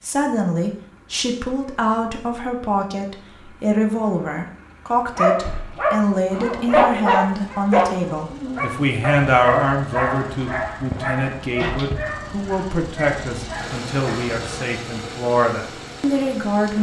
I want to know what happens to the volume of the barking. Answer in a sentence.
The loudness of the barking goes down.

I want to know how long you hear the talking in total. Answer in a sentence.
You can hear the talking for 17 seconds altogether.